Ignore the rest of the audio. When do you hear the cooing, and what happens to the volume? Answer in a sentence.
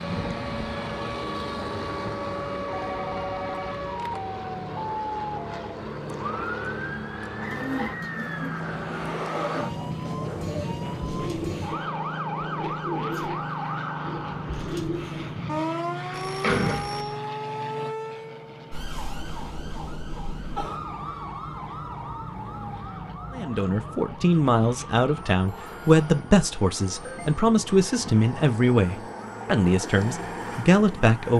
You can hear the cooing from 7.4 to 15.4 s, at a steady volume.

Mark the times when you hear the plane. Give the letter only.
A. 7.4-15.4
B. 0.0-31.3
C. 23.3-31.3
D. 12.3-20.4
B.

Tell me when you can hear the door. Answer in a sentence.
The door can be heard from 15.9 to 17.0 s.